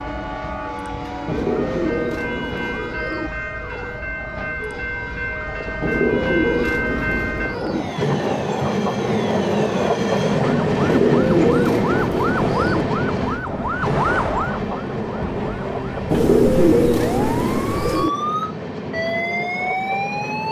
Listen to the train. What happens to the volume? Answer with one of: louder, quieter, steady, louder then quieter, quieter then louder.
louder then quieter.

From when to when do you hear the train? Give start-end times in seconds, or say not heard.
0.0-20.4.